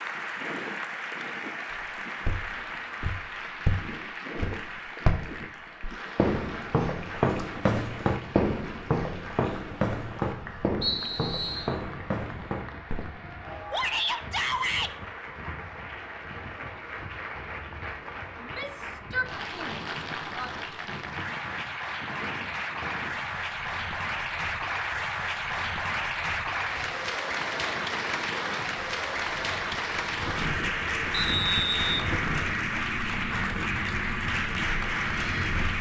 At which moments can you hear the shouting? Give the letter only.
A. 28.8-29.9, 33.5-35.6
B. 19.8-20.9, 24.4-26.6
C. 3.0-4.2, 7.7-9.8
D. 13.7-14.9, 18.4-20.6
D.